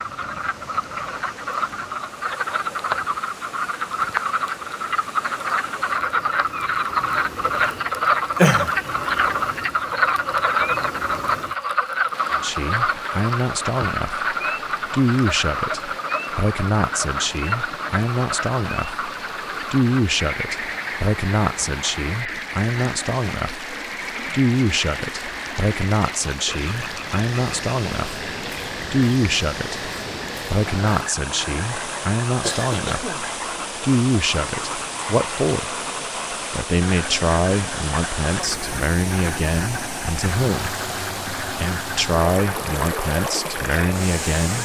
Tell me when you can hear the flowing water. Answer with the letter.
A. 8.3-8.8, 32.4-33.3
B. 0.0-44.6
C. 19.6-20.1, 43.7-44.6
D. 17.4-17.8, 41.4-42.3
B.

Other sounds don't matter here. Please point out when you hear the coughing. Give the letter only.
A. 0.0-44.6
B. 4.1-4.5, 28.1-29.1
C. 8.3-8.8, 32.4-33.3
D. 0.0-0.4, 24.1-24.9
C.